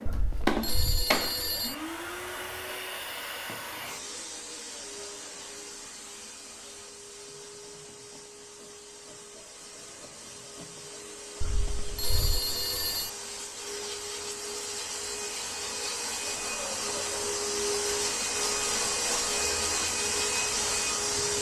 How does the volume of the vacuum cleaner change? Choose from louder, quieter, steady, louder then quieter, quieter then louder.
quieter then louder.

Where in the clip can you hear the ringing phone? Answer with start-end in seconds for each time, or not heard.
0.1-1.8, 11.4-13.1.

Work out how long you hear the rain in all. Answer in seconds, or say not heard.
not heard.